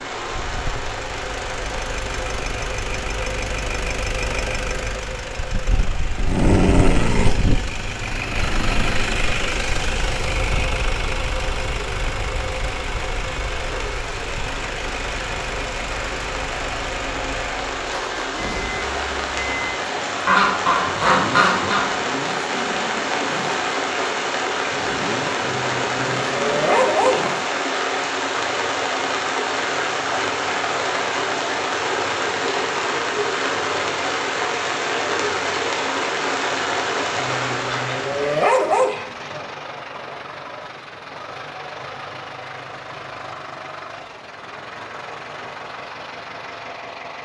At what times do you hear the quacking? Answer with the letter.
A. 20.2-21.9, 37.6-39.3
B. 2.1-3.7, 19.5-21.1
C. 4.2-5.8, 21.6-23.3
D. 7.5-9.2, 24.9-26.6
A.